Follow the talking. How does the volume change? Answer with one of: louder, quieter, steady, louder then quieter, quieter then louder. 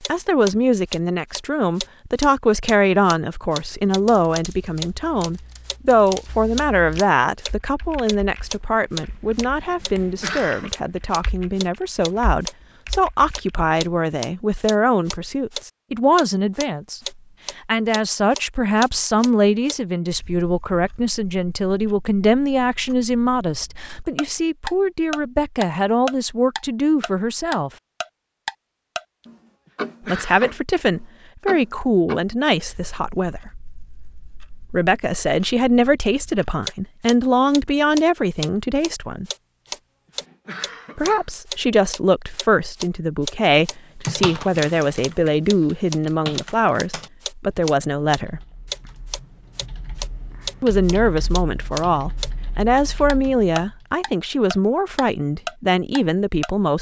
steady.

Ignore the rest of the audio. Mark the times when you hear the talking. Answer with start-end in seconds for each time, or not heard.
0.1-27.7, 30.1-33.7, 34.6-39.2, 41.0-48.4, 50.6-56.7.